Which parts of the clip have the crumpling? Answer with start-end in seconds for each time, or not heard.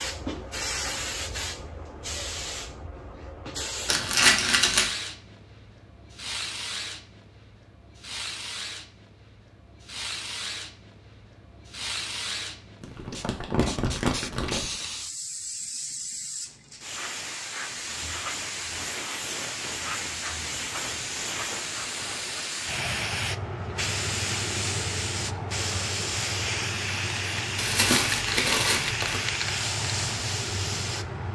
3.9-4.9, 12.8-14.7, 27.6-29.2.